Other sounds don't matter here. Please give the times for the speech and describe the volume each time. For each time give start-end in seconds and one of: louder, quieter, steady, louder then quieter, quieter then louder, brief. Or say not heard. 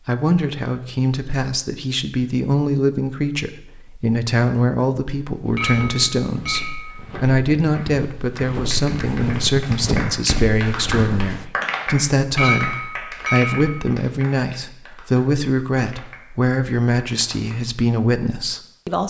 0.1-19.0 steady.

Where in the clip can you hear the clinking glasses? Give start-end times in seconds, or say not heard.
5.5-7.0, 12.3-13.8.